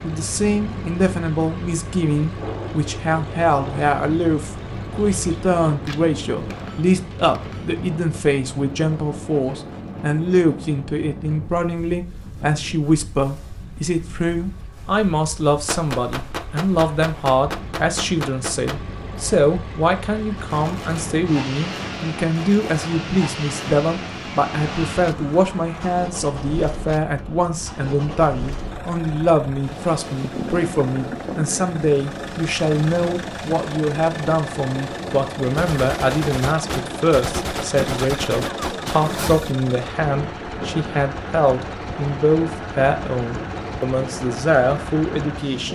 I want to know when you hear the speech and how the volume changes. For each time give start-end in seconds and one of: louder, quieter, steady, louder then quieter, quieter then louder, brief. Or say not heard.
0.0-45.7 steady.